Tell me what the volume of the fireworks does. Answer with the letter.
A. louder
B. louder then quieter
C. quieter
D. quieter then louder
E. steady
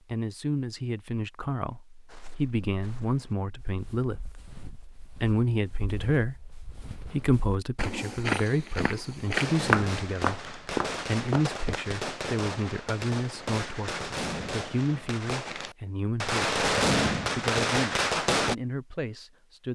A.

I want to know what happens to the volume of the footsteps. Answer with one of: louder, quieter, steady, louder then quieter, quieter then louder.
louder.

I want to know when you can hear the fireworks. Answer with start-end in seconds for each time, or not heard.
9.3-18.6.